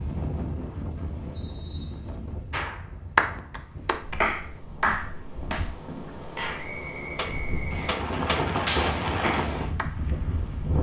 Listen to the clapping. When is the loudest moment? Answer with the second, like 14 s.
3 s.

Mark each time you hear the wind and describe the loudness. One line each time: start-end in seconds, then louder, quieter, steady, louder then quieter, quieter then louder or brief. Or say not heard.
0.0-10.7 quieter then louder.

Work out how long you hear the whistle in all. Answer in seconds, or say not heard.
2 s.